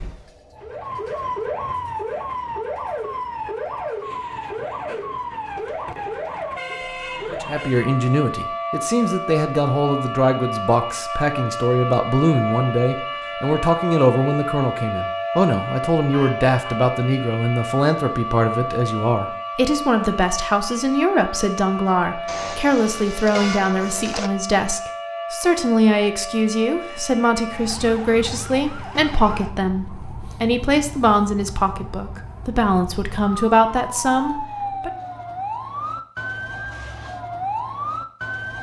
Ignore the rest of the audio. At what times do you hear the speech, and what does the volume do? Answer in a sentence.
You can hear the speech from 7.3 to 34.9 s, at a steady volume.